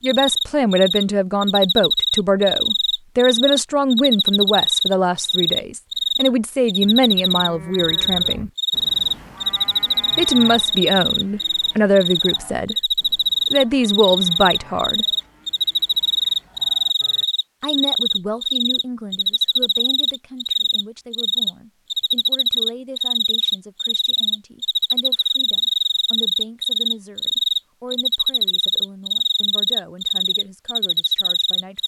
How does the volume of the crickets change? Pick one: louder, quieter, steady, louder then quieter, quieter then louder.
steady.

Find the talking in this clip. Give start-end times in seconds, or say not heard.
0.0-8.5, 10.2-12.8, 13.5-15.1, 17.6-31.8.